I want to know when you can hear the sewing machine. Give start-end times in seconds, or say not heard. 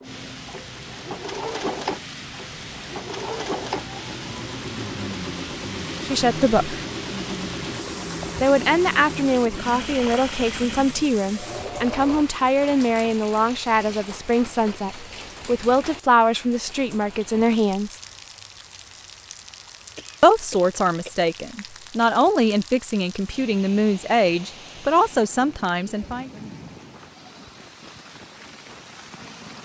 0.0-12.2.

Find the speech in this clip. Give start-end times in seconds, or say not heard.
6.0-6.8, 8.4-18.0, 20.2-26.3.